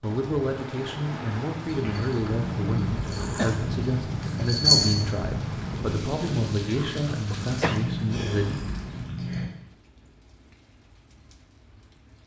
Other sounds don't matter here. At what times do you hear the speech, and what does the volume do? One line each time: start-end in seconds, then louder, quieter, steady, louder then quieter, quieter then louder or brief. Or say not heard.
0.0-8.6 steady.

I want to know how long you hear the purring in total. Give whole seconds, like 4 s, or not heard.
8 s.